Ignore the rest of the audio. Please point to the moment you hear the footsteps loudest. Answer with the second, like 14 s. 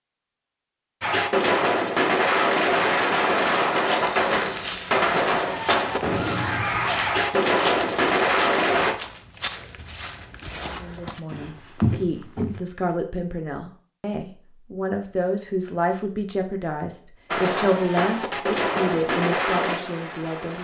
12 s.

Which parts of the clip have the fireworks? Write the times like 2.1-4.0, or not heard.
1.0-8.9, 17.3-20.5.